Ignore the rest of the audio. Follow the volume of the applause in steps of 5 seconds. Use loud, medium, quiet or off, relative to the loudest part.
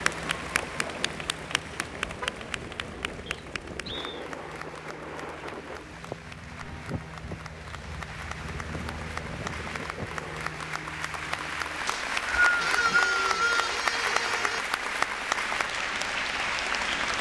medium, quiet, loud, loud.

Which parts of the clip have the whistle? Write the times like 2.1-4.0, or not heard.
3.2-4.1, 11.8-13.7.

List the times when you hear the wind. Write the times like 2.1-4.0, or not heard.
0.0-10.2.